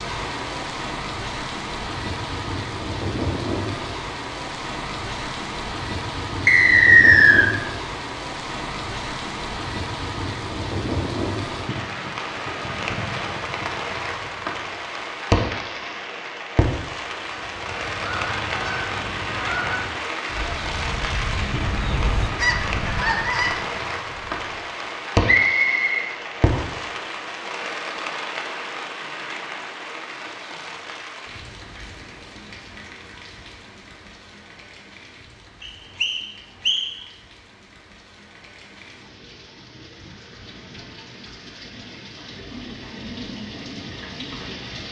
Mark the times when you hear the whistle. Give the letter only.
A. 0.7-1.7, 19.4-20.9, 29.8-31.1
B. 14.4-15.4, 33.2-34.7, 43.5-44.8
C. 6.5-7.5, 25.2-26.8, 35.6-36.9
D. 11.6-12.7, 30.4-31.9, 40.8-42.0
C.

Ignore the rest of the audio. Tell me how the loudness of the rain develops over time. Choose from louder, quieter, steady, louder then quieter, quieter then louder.
quieter.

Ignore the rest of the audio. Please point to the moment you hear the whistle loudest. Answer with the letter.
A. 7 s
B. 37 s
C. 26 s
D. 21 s
A.